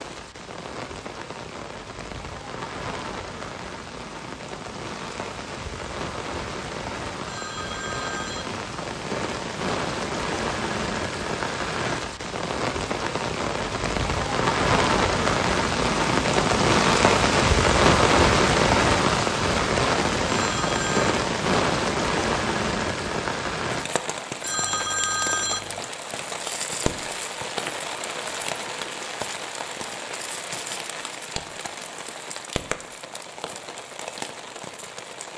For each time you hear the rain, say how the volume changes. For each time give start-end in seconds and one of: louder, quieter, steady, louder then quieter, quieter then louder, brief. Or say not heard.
0.0-35.3 louder then quieter.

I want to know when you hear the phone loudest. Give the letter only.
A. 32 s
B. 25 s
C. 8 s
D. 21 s
B.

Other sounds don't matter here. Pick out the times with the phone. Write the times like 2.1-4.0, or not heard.
7.2-8.6, 20.3-21.1, 24.4-25.8.